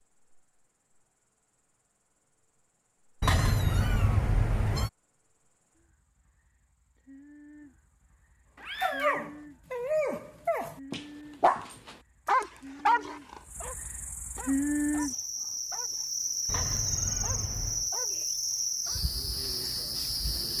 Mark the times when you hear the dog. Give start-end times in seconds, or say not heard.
8.8-19.0.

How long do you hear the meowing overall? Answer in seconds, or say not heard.
4 s.